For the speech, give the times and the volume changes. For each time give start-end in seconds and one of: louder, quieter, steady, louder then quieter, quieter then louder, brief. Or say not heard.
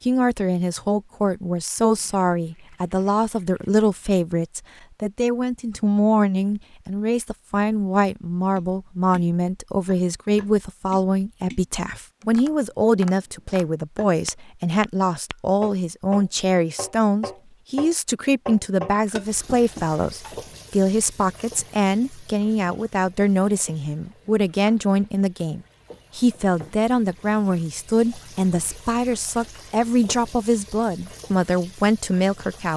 0.0-32.7 steady.